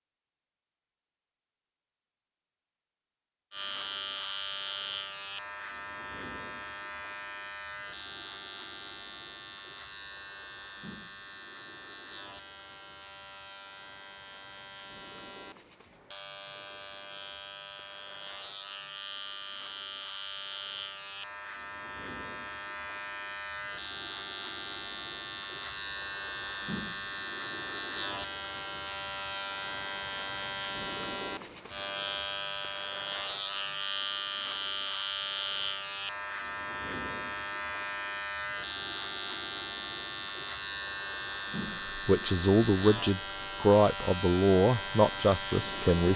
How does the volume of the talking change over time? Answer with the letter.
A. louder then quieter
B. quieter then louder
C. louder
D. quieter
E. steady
B.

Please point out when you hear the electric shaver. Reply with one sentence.
You can hear the electric shaver from 3.5 to 46.1 s.